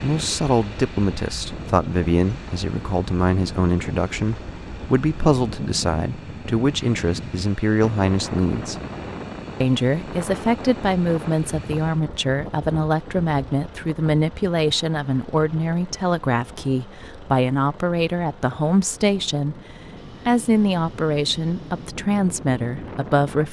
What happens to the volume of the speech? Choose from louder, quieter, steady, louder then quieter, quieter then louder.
steady.